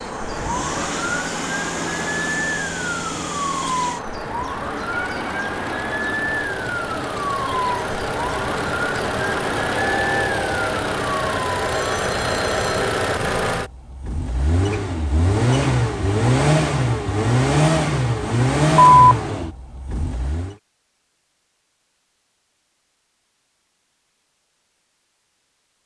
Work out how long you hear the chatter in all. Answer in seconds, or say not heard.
not heard.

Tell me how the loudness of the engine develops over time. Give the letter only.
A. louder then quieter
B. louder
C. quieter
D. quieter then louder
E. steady
B.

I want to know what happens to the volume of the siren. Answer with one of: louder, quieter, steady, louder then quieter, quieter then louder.
steady.